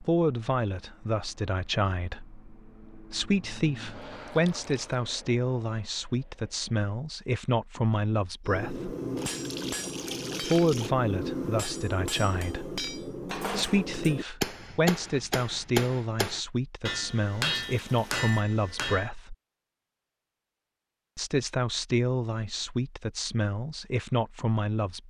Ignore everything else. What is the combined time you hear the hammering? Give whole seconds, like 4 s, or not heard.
11 s.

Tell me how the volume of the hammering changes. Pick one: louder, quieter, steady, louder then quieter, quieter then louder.
steady.